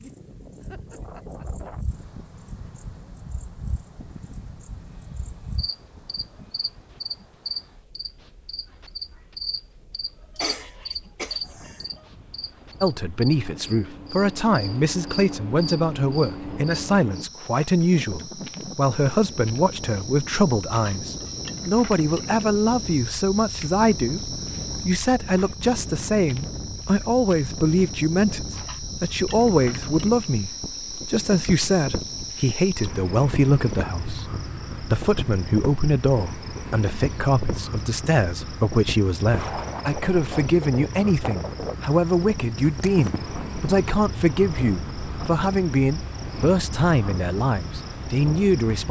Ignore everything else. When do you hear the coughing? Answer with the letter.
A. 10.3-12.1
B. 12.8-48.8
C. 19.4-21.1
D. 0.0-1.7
A.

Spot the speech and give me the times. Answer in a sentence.
You can hear the speech from 12.8 to 48.8 s.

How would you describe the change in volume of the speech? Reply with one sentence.
The loudness of the speech stays about the same.